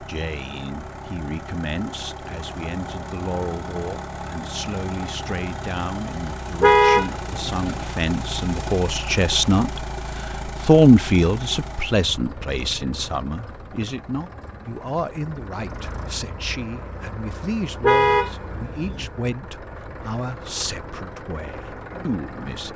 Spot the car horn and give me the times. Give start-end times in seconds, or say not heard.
6.6-7.7, 17.8-19.1.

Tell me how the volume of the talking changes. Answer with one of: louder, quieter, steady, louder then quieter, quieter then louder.
louder then quieter.